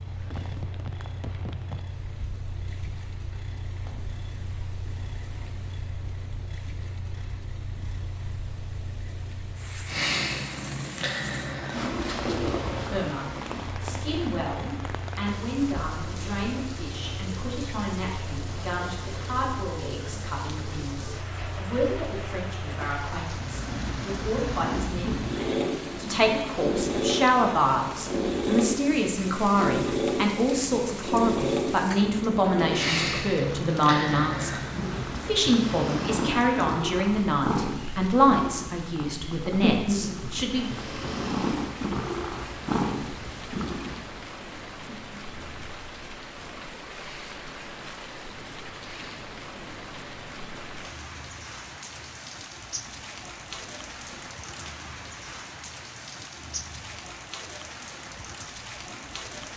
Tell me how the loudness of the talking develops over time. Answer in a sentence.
The loudness of the talking goes up.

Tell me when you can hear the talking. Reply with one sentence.
The talking can be heard from 12.8 to 40.7 s.